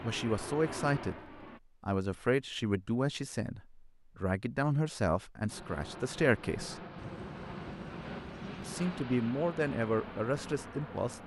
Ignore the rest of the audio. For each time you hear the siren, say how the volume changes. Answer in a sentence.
You can't hear the siren here.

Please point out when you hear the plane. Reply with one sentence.
The plane can be heard from 0.0 to 1.6 s and from 5.5 to 11.2 s.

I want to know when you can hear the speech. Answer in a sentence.
The speech can be heard from 0.0 to 1.1 s, from 1.8 to 6.8 s and from 8.6 to 11.2 s.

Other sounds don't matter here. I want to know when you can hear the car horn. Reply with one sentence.
The car horn can't be heard in this clip.